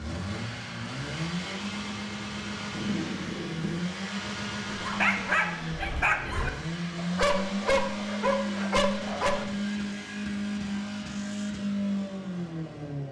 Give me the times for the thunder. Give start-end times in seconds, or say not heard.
2.7-3.8.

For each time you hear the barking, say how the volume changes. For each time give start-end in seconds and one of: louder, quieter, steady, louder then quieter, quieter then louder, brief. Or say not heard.
4.7-9.5 steady.